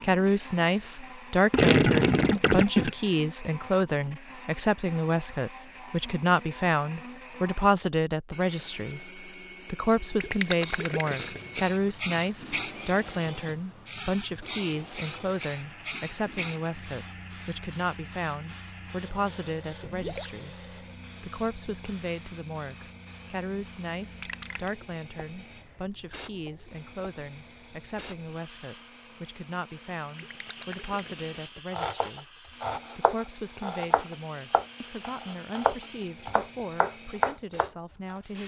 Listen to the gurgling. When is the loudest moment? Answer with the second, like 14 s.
2 s.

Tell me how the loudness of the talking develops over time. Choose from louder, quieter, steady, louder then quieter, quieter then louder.
quieter.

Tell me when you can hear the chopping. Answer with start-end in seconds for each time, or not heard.
31.7-38.1.